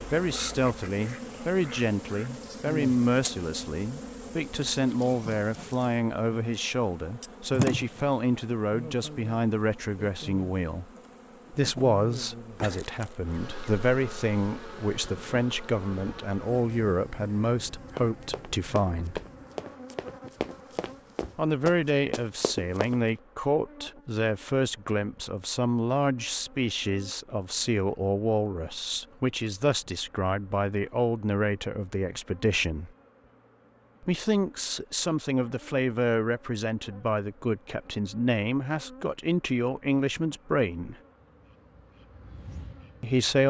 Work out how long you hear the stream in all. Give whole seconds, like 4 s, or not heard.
not heard.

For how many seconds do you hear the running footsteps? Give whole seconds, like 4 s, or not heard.
5 s.